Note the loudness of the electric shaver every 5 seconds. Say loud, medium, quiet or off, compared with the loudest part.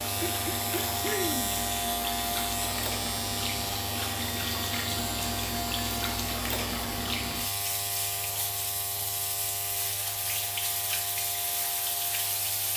loud, loud, medium.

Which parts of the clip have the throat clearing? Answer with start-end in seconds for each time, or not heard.
0.1-1.6.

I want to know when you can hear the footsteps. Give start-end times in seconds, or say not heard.
not heard.